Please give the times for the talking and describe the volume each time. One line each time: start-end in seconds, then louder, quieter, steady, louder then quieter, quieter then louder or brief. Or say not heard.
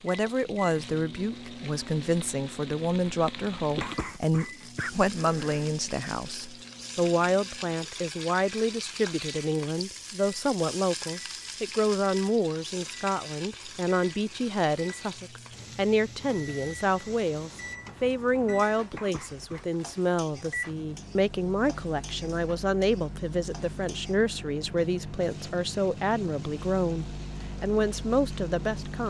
0.0-29.0 steady.